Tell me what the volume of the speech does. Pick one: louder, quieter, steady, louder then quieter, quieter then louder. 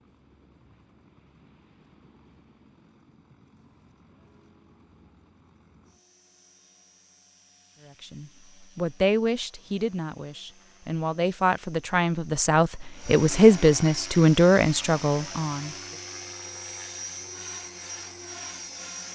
quieter then louder.